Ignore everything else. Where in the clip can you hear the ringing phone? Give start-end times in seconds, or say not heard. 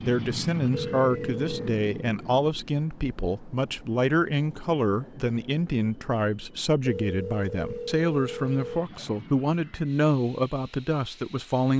0.7-1.8, 6.8-8.8.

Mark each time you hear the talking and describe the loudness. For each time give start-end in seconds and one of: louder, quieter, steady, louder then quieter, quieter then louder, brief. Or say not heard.
0.1-11.7 steady.